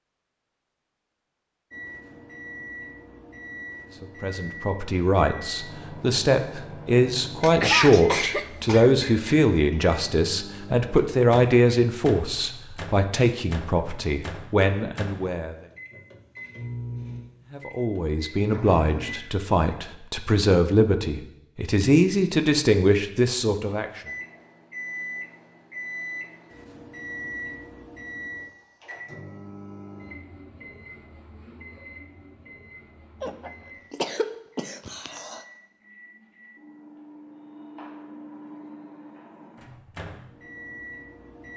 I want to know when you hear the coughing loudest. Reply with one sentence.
The loudest moment of the coughing is at 8 seconds.